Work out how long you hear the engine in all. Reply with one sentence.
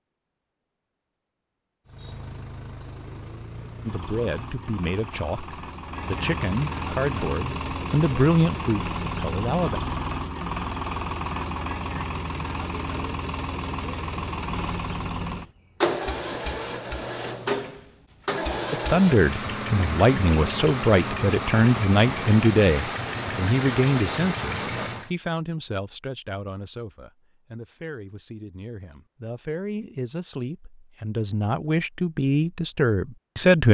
The engine can be heard for 23 seconds in total.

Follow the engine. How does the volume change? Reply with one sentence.
The loudness of the engine goes up.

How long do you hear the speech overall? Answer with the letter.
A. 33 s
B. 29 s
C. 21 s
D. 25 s
C.